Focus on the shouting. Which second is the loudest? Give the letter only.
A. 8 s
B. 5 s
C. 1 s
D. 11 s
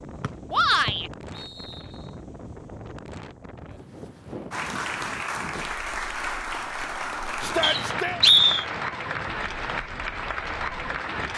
C.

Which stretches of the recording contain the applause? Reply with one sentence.
The applause can be heard from 4.5 to 11.3 s.